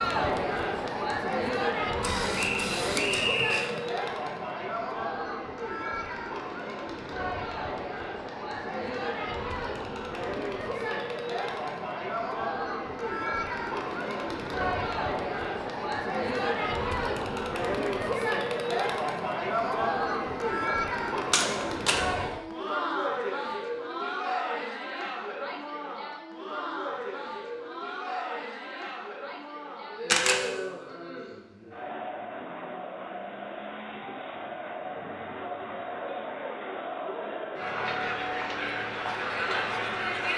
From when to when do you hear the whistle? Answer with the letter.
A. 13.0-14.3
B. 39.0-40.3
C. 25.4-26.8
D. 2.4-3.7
D.